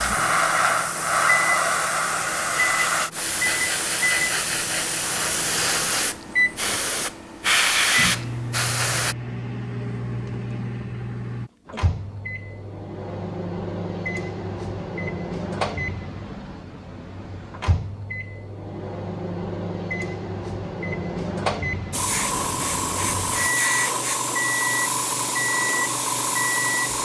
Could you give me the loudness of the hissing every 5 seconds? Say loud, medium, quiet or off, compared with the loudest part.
loud, loud, off, off, loud, loud.